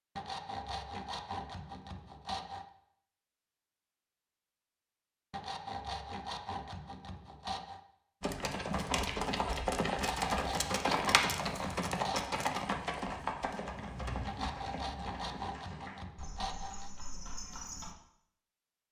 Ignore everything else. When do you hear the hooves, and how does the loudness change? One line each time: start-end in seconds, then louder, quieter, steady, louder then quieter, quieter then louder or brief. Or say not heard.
8.2-17.9 quieter.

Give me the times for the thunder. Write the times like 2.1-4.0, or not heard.
13.7-15.4.